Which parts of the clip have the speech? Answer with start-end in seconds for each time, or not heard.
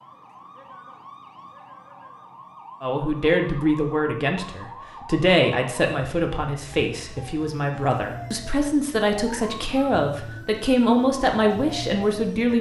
2.8-12.5.